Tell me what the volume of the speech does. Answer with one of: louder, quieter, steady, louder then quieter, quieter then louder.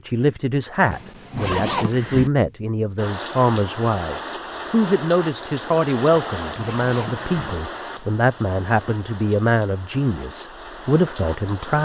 steady.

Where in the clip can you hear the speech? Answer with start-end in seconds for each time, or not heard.
0.1-11.7.